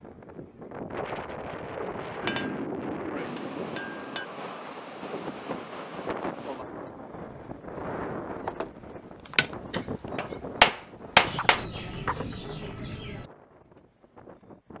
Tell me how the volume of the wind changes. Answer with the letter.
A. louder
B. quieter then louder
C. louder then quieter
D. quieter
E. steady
D.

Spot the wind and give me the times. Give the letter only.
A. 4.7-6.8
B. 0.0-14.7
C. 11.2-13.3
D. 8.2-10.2
B.